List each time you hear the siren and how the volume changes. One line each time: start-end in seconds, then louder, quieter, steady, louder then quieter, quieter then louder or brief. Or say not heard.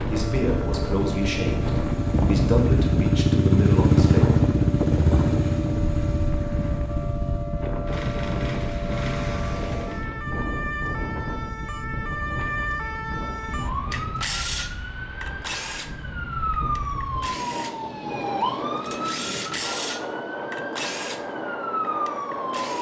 0.1-22.7 louder.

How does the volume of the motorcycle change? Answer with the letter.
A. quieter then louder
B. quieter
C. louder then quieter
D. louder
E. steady
C.